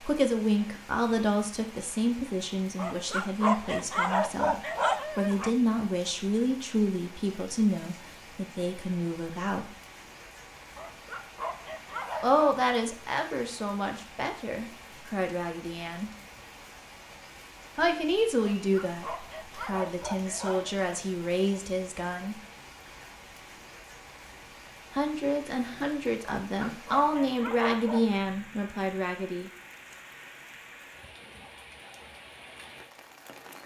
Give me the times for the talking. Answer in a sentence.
The talking can be heard from 0.0 to 9.7 s, from 12.2 to 16.1 s, from 17.8 to 22.4 s and from 24.9 to 29.5 s.